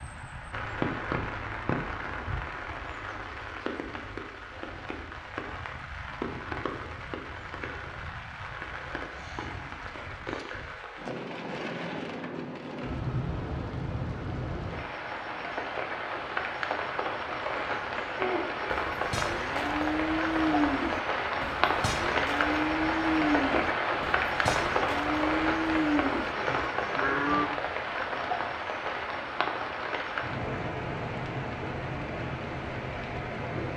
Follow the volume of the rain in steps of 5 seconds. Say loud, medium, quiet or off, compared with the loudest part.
medium, medium, medium, loud, loud, loud, medium.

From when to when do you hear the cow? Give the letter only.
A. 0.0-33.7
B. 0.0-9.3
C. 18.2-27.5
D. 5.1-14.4
C.